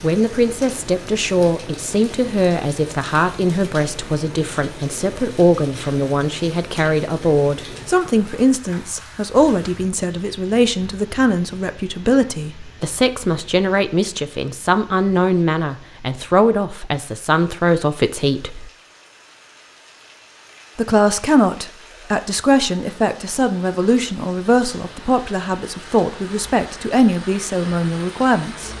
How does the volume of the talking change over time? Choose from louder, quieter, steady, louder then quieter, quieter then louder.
steady.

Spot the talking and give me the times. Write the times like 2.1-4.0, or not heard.
0.0-18.7, 20.8-28.7.